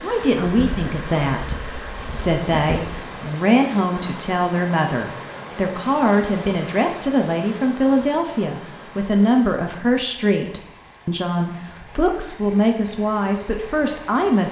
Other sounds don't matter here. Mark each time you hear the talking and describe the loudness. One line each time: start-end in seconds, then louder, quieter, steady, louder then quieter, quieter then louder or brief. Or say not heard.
0.0-14.4 steady.